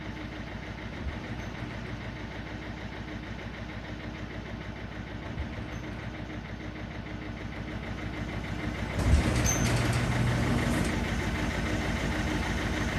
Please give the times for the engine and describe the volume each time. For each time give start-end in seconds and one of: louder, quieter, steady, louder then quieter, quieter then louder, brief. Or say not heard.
0.0-12.9 louder.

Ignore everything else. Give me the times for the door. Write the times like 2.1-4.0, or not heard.
0.9-2.1, 5.2-6.2, 8.9-10.9.